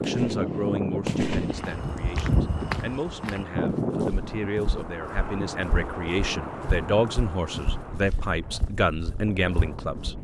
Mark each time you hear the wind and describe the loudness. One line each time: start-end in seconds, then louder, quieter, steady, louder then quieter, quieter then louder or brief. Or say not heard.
0.0-10.1 quieter.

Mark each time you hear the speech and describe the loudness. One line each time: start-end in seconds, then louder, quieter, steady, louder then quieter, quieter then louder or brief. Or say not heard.
0.1-10.1 louder.